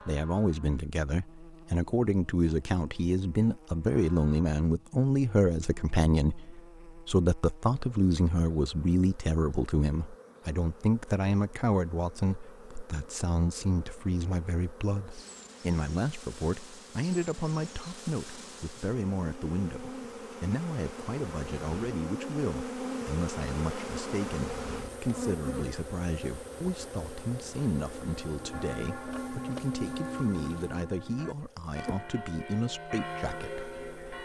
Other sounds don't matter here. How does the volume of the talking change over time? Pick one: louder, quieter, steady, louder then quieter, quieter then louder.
quieter.